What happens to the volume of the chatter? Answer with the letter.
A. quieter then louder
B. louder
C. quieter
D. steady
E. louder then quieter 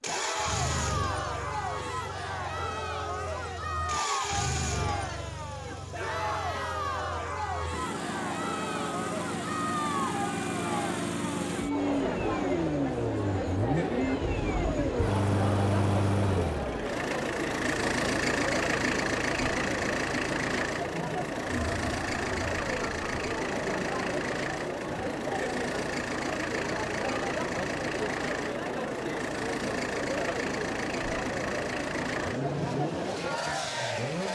D.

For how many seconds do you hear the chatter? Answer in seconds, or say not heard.
34 s.